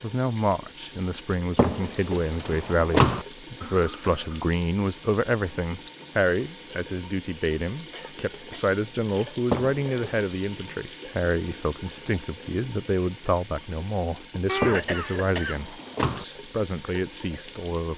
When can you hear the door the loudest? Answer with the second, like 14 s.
3 s.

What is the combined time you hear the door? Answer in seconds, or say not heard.
4 s.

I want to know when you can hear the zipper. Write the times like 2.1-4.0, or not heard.
not heard.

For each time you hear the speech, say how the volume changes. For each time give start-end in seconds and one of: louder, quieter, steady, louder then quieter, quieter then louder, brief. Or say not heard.
0.0-17.9 steady.